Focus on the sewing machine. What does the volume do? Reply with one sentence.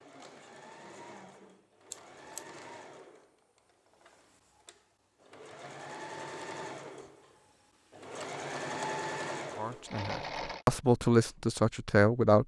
The loudness of the sewing machine goes up.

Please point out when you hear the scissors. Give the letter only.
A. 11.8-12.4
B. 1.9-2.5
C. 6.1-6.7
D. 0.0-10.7
B.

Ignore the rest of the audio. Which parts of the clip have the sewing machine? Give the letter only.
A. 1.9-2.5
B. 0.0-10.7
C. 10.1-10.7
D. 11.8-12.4
B.